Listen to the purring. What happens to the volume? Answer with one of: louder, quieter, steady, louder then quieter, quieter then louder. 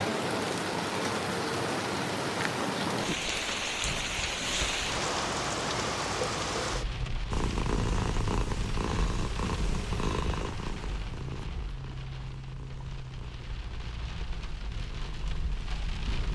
quieter.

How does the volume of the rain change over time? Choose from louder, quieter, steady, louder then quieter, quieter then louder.
quieter.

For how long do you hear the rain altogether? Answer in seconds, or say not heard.
16 s.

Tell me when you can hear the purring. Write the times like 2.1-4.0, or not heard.
7.3-16.3.